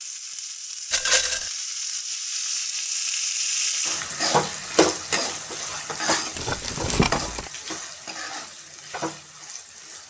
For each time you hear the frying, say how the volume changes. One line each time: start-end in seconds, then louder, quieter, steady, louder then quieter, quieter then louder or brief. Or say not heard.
0.0-10.0 louder then quieter.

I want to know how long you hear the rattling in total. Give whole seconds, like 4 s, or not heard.
2 s.